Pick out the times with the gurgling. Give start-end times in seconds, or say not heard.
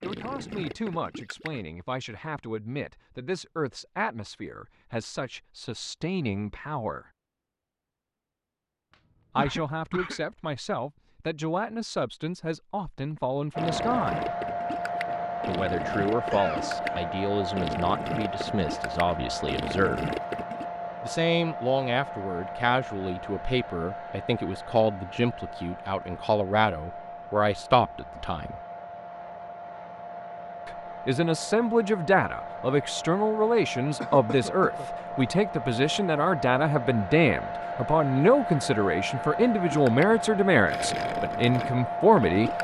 0.0-1.6, 13.6-20.6, 39.7-42.6.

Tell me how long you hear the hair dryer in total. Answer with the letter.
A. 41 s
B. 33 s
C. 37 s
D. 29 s
D.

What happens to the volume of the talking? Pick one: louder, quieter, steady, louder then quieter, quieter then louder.
louder.